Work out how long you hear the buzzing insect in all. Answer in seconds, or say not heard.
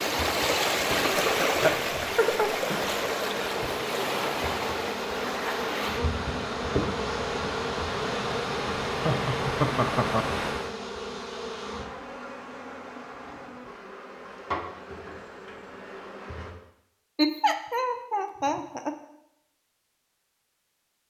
16 s.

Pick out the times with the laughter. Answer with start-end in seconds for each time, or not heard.
1.1-2.9, 8.9-10.2, 17.1-18.9.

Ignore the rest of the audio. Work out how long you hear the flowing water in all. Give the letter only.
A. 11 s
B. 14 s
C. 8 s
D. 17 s
A.